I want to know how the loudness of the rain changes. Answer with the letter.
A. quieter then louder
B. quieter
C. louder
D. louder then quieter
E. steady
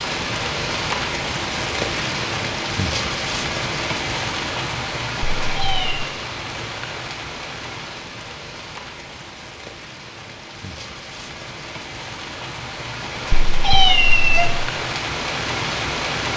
A.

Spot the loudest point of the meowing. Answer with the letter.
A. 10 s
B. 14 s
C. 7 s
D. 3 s
B.